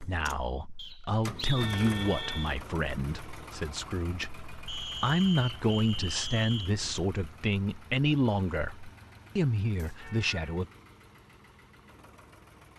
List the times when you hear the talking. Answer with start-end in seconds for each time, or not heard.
0.0-10.7.